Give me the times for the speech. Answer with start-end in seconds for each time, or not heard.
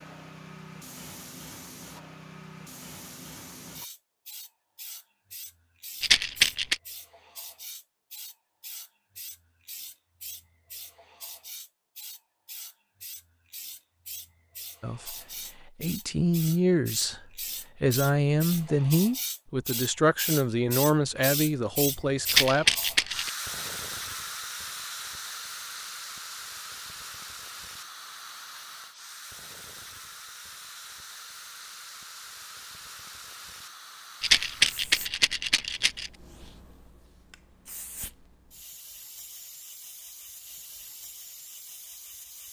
14.8-22.7.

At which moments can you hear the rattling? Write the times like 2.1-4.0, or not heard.
6.0-6.8, 22.2-23.3, 34.2-36.1.